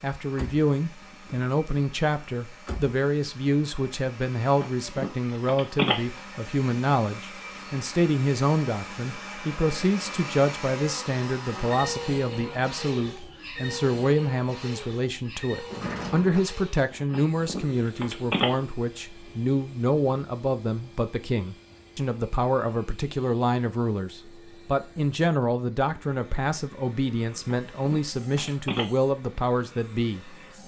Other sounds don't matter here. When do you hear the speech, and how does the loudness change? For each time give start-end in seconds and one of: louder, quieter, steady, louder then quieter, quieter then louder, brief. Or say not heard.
0.0-30.6 steady.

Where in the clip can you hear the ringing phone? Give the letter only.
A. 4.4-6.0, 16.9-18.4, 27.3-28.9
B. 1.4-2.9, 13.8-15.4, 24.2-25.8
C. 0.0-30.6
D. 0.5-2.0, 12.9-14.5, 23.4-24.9
A.